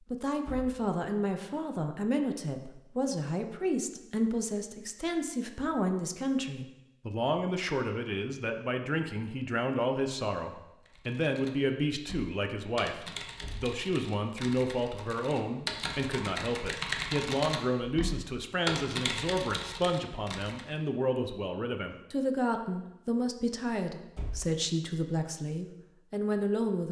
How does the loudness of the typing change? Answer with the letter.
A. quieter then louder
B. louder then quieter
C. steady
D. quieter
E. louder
E.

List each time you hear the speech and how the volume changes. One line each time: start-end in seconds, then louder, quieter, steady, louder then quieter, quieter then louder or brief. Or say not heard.
0.0-26.8 steady.